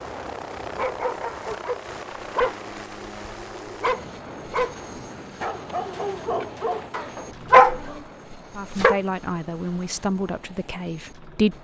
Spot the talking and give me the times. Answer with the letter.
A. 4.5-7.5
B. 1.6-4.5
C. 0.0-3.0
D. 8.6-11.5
D.